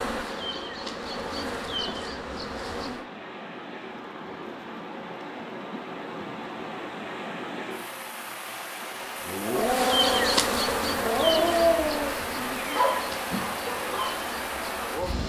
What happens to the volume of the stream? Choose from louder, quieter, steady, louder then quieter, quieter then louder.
louder.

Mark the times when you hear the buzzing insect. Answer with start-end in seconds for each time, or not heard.
0.0-3.0, 9.6-15.2.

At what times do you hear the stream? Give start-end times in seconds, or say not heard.
0.0-15.2.